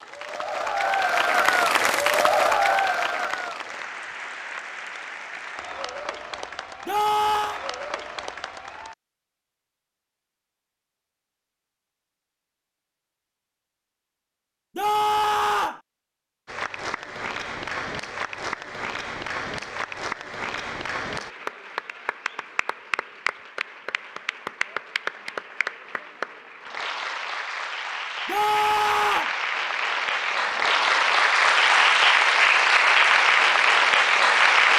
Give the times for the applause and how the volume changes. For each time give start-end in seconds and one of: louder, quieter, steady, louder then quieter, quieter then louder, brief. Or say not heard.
0.0-8.9 quieter
16.4-34.7 louder.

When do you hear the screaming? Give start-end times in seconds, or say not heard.
6.8-7.6, 14.8-15.8, 28.2-29.4.